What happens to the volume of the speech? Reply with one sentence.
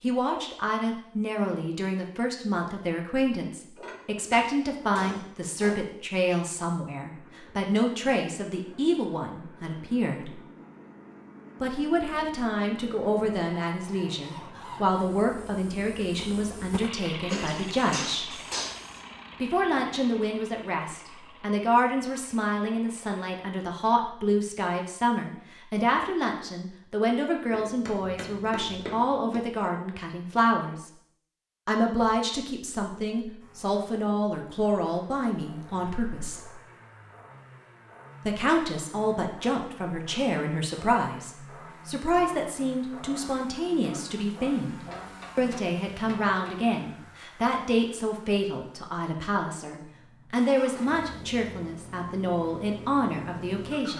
The volume of the speech stays about the same.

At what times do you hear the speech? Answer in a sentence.
The speech can be heard from 0.0 to 10.3 s, from 11.6 to 18.4 s, from 19.4 to 30.9 s, from 31.6 to 36.5 s and from 38.2 to 53.9 s.